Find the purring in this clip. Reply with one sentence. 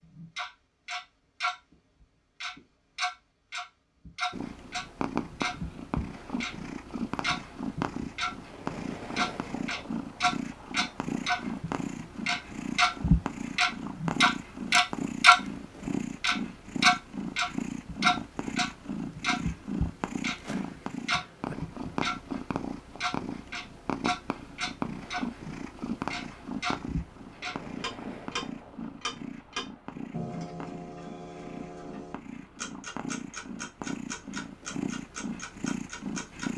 The purring can be heard from 4.3 to 36.5 s.